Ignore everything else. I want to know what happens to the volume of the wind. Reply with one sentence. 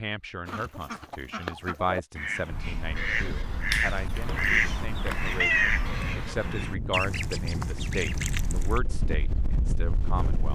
The volume of the wind goes up.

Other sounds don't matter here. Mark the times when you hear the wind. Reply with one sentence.
You can hear the wind from 2.5 to 10.4 s.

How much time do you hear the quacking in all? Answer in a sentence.
You can hear the quacking for 8 seconds altogether.